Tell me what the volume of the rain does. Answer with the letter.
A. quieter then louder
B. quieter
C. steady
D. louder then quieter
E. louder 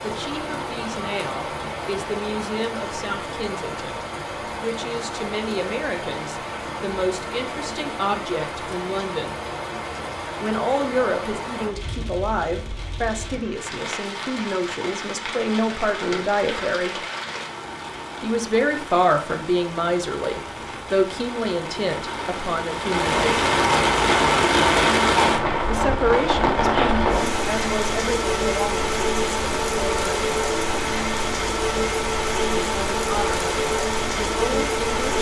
E.